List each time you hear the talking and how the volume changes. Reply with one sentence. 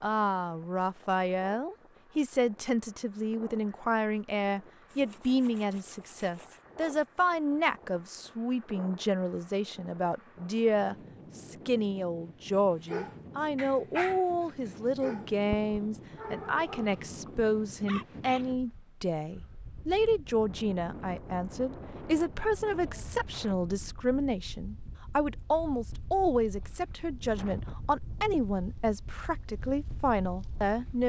The talking can be heard from 0.0 to 31.0 s, at a steady volume.